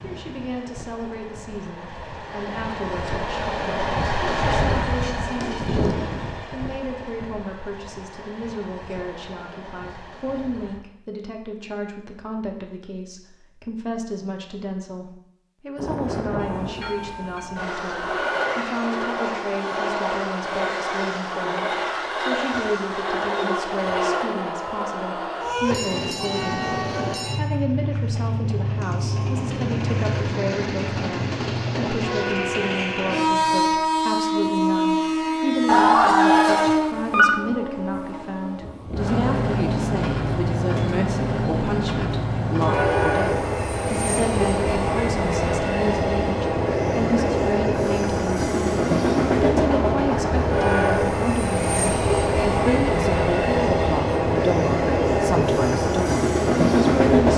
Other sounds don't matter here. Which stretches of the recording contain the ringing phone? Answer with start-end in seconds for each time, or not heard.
35.6-37.4.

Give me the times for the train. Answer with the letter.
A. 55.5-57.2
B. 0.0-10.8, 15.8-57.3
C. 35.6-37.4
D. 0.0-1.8
B.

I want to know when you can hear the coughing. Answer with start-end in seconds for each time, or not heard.
not heard.